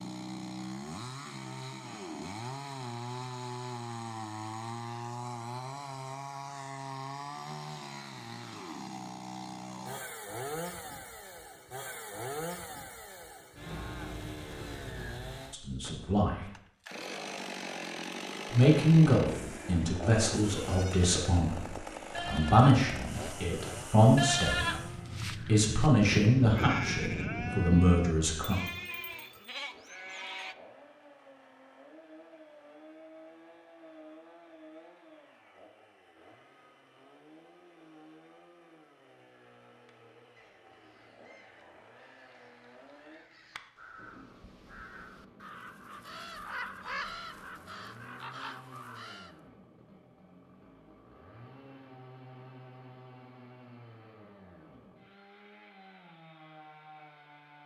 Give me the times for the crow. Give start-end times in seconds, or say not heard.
39.9-49.4.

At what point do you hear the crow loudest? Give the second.
47 s.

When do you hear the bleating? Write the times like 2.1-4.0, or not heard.
20.6-30.6.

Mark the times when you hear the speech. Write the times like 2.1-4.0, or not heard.
15.5-16.4, 18.5-24.6, 25.4-28.6.